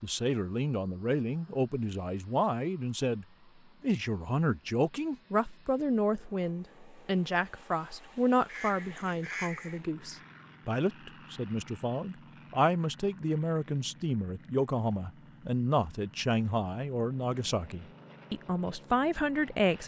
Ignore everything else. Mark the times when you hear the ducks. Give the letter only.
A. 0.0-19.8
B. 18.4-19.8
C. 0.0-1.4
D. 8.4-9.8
D.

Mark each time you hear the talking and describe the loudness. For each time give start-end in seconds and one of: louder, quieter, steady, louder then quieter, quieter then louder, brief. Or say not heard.
0.0-19.8 steady.